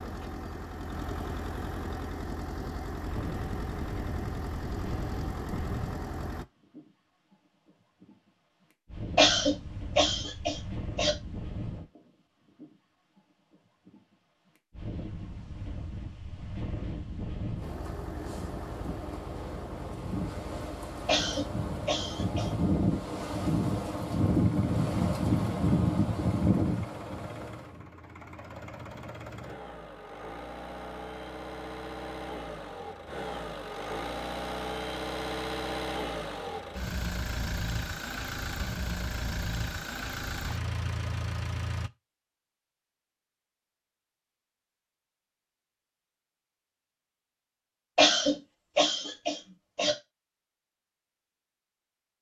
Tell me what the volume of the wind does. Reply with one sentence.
The volume of the wind goes up.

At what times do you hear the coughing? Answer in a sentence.
You can hear the coughing from 9.2 to 11.1 s, from 21.1 to 22.5 s and from 48.0 to 50.0 s.